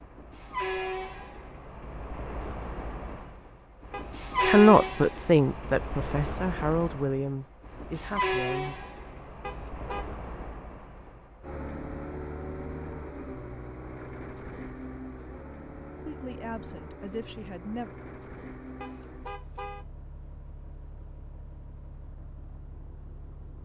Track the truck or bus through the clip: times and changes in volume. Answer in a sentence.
The truck or bus can be heard from 0.0 to 23.5 s, getting quieter.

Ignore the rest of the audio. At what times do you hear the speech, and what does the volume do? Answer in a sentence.
You can hear the speech from 4.5 to 8.8 s, getting quieter; and briefly from 15.9 to 17.9 s.